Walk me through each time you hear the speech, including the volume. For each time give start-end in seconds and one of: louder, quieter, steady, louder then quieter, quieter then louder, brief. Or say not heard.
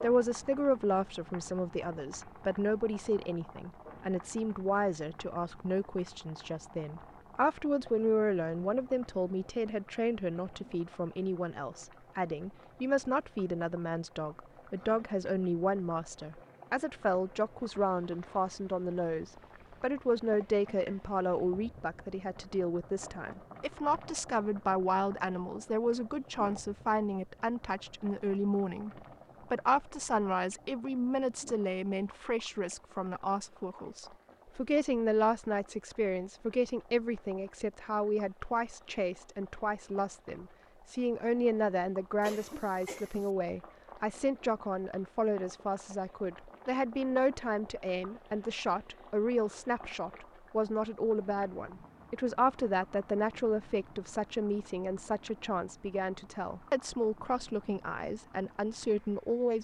0.0-28.9 steady
29.5-59.5 steady.